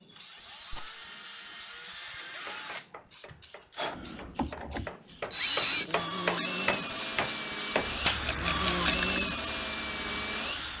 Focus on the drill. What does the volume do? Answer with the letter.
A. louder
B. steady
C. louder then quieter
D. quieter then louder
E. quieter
A.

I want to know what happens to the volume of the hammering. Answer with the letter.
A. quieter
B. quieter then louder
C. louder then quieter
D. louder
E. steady
D.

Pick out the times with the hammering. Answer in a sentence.
The hammering can be heard from 2.5 to 8.2 s.